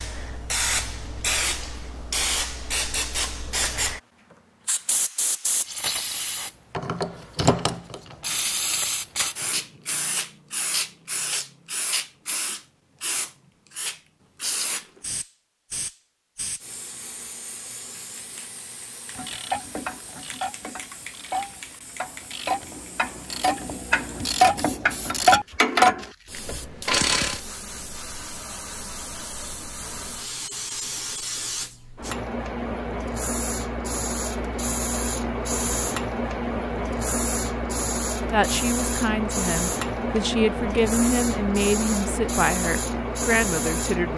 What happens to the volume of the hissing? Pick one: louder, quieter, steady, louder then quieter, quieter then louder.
quieter then louder.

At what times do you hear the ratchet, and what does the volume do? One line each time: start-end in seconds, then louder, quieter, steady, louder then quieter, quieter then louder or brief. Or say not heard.
19.1-27.4 louder.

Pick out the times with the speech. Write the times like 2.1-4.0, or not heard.
38.3-44.1.